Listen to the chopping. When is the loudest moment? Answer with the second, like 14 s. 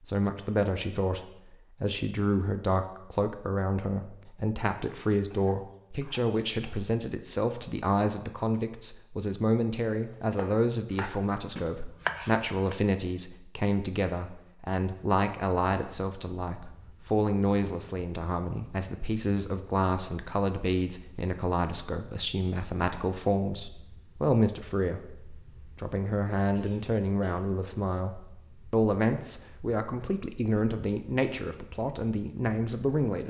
12 s.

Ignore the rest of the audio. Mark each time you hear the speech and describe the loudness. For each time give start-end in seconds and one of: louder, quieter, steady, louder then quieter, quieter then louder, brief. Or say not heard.
0.0-33.2 steady.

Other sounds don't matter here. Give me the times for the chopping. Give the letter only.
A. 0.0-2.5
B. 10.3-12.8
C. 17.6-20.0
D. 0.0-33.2
B.